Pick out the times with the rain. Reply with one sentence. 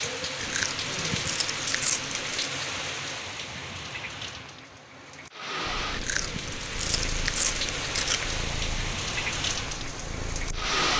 The rain can be heard from 0.0 to 10.9 s.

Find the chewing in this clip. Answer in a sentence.
The chewing can be heard from 0.4 to 2.5 s and from 5.9 to 8.3 s.